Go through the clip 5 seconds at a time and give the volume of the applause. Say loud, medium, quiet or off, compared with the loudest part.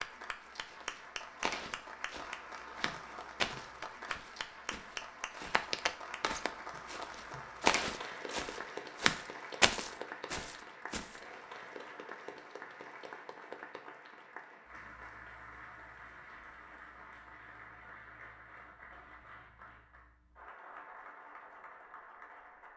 loud, loud, loud, medium, medium.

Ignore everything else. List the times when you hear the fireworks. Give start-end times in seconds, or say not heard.
not heard.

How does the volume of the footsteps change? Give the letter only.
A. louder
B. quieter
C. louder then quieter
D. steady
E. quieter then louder
A.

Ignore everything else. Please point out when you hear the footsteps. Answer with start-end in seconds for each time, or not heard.
0.7-11.1.